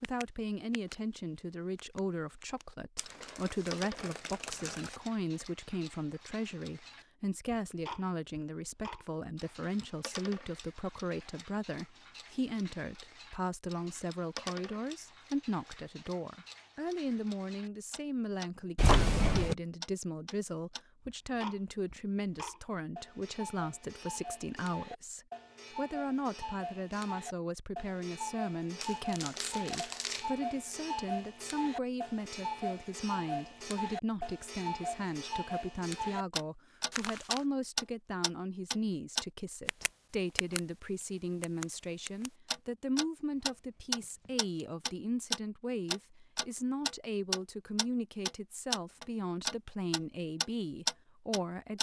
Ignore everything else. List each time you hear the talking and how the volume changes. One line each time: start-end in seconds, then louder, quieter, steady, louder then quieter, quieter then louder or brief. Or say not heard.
0.0-51.7 steady.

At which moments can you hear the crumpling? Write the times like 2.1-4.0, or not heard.
3.0-5.0, 28.8-30.3, 36.9-37.5.